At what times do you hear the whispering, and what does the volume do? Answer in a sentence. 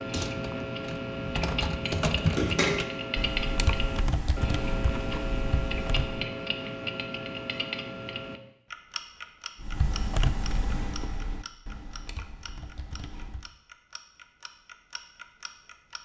The whispering can't be heard in this clip.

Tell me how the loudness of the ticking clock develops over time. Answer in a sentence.
The loudness of the ticking clock goes down.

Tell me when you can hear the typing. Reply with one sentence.
The typing can be heard from 0.1 to 6.2 s and from 9.6 to 13.4 s.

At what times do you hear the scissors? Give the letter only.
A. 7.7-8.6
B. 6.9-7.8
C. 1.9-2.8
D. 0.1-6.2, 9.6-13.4
C.